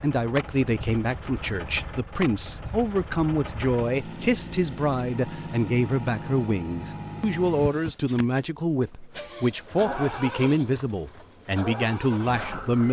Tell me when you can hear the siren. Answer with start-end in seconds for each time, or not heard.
not heard.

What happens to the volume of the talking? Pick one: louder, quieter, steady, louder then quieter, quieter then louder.
steady.